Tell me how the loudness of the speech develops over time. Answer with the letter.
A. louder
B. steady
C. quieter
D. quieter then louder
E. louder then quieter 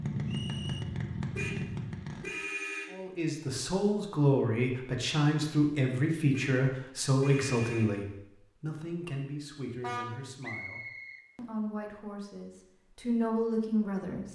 D.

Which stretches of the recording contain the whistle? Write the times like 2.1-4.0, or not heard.
0.2-0.8, 10.4-11.2.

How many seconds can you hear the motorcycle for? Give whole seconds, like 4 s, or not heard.
2 s.